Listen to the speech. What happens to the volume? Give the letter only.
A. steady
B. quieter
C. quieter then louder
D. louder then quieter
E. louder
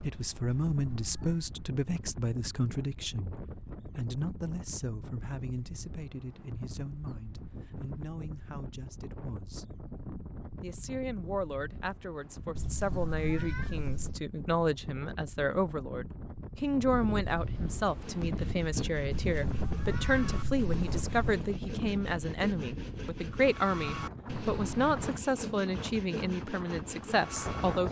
C.